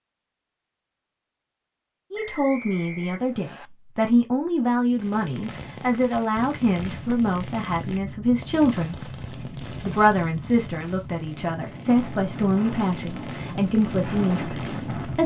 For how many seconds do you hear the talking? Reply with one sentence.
You can hear the talking for 12 seconds altogether.